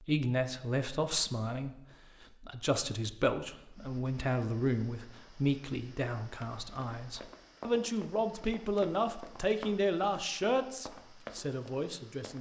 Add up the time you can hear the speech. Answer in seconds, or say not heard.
12 s.